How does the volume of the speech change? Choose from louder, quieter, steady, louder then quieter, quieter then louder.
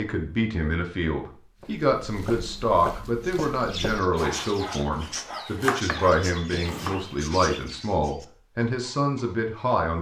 steady.